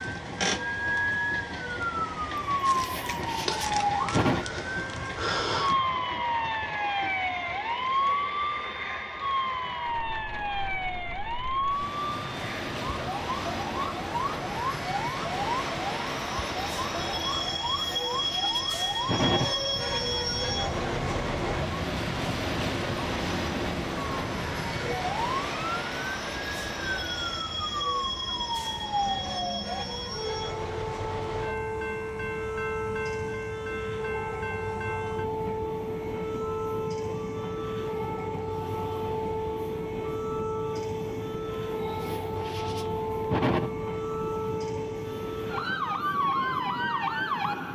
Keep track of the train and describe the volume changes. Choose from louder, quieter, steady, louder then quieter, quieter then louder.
louder then quieter.